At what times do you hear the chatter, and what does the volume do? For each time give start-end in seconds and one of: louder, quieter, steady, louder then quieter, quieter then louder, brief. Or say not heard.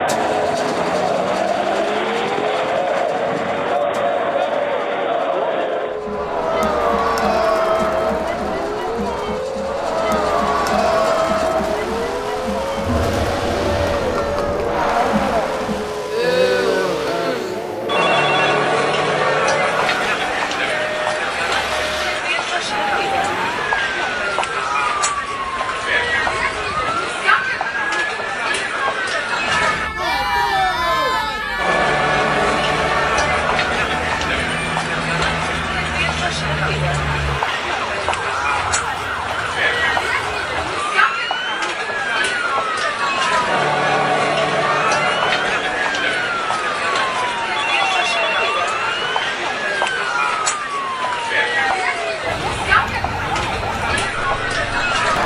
0.0-55.2 steady.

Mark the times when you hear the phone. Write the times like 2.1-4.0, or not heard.
17.9-18.6, 47.5-48.7.